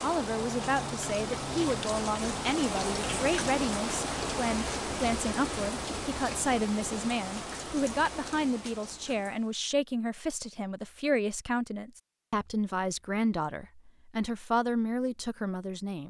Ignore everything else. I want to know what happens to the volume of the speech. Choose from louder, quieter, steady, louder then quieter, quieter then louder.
steady.